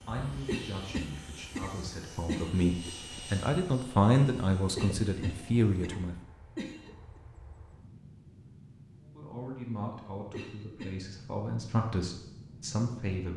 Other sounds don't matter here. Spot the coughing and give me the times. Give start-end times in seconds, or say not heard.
0.5-2.9, 4.8-7.2, 10.3-11.1.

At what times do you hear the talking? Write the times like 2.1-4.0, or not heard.
0.1-6.2, 8.9-13.3.